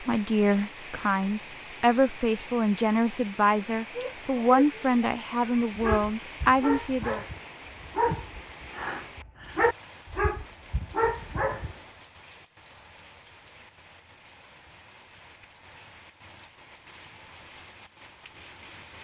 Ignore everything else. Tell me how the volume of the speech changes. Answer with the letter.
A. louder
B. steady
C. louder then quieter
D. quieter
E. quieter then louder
B.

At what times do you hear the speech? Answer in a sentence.
The speech can be heard from 0.0 to 7.2 s.